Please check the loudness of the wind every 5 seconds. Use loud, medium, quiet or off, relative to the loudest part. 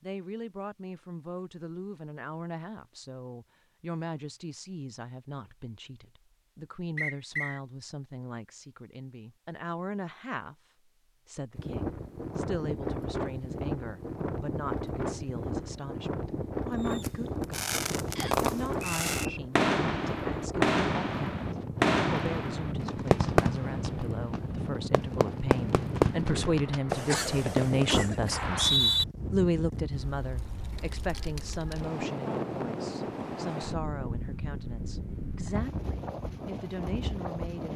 off, off, loud, loud, loud, loud, loud, loud.